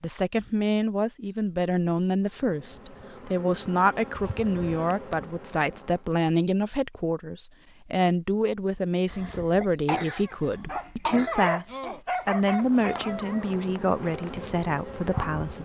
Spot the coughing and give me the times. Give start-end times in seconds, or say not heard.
9.1-11.3.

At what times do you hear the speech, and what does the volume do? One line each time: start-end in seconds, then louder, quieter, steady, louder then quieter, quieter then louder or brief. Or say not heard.
0.0-15.6 steady.